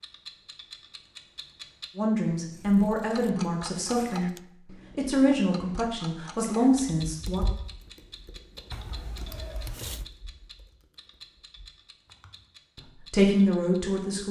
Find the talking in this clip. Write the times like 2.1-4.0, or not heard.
1.9-7.5, 12.8-14.2.